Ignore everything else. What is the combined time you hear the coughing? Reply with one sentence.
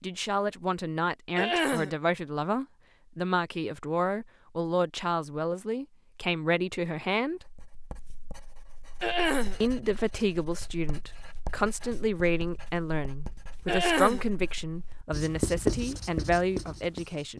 The coughing can be heard for 2 seconds in total.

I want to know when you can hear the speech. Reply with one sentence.
You can hear the speech from 0.0 to 7.5 s and from 9.6 to 17.3 s.